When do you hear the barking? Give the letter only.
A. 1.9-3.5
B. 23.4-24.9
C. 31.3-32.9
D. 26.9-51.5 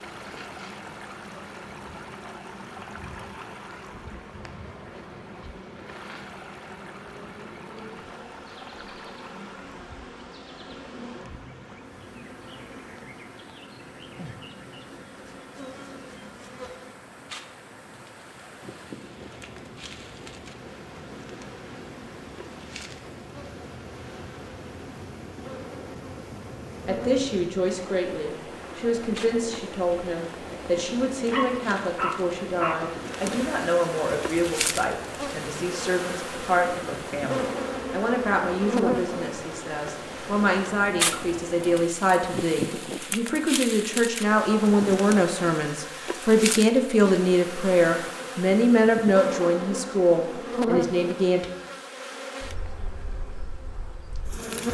C.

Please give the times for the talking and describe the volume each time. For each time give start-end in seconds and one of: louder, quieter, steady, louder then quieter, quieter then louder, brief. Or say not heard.
26.9-51.5 louder.